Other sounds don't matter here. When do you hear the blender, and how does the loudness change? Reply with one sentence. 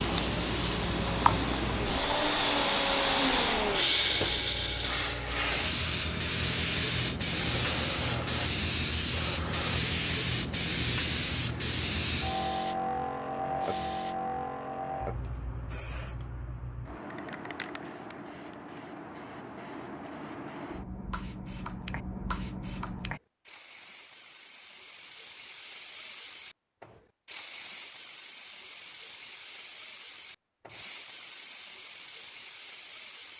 The blender can be heard from 0.2 to 9.8 s, getting louder then quieter.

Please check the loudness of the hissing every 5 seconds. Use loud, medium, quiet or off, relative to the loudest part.
loud, loud, loud, medium, medium, medium, medium.